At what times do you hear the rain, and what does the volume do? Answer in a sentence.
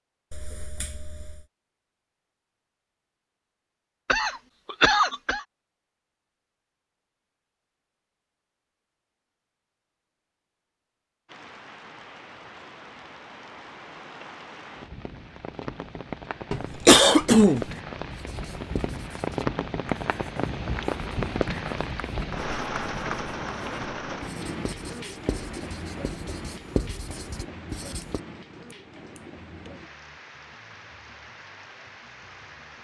The rain can be heard from 11.2 to 32.7 s, getting louder then quieter.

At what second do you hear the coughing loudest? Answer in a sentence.
The loudest moment of the coughing is at 17 seconds.